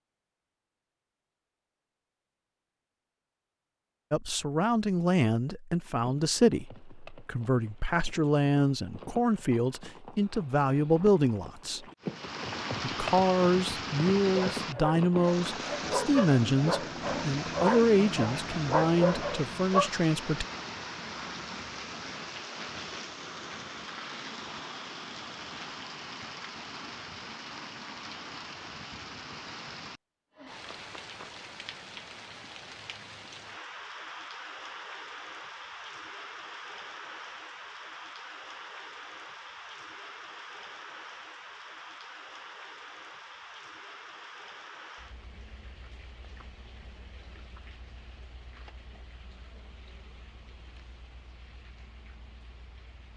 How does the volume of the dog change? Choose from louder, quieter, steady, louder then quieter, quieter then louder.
louder.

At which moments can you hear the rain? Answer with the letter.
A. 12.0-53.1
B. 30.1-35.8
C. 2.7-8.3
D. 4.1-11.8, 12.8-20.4
A.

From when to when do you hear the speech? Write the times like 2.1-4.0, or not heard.
4.1-11.8, 12.8-20.4.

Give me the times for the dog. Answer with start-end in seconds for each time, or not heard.
14.2-19.9.